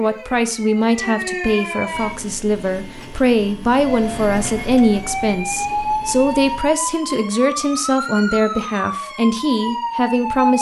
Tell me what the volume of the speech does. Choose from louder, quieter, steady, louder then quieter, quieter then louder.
steady.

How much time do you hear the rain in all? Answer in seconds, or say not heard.
not heard.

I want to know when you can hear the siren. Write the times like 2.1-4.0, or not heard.
0.0-2.1, 3.8-10.5.